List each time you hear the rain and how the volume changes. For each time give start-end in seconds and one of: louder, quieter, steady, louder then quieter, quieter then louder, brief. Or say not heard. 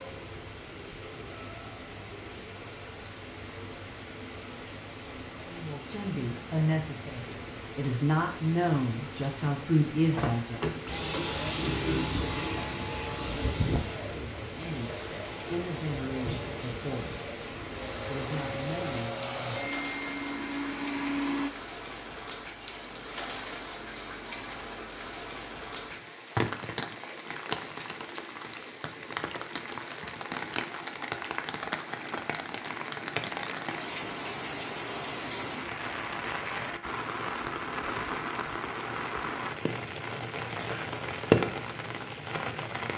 0.0-42.9 louder.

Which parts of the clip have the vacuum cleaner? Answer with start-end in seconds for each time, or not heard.
10.1-21.5.